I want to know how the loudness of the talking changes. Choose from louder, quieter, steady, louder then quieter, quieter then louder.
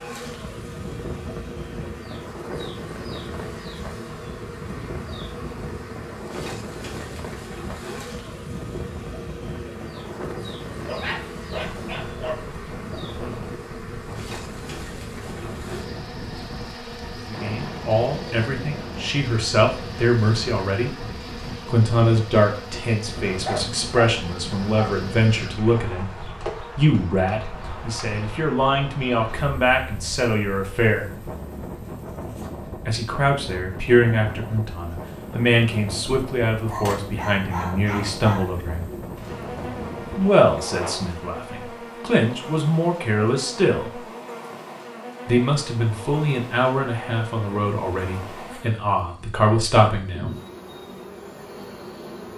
steady.